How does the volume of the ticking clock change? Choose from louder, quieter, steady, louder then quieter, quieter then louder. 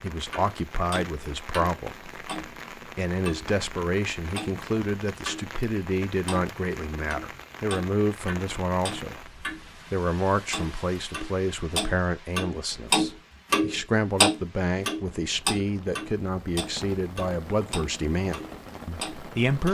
louder then quieter.